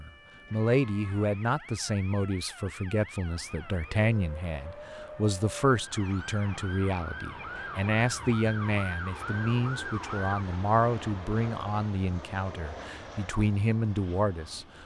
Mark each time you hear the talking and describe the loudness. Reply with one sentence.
You can hear the talking from 0.0 to 14.8 s, at a steady volume.